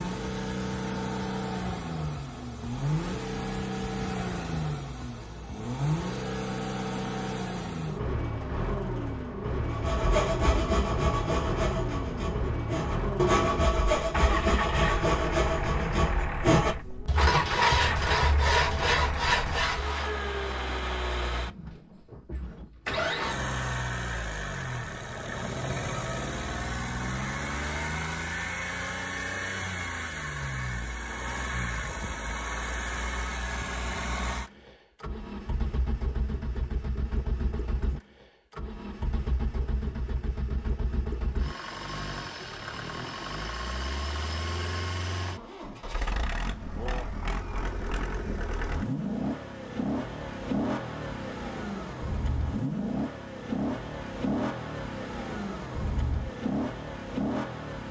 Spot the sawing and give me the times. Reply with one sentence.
The sawing can be heard from 9.7 to 20.1 s.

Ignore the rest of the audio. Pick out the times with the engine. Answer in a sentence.
You can hear the engine from 0.0 to 57.8 s.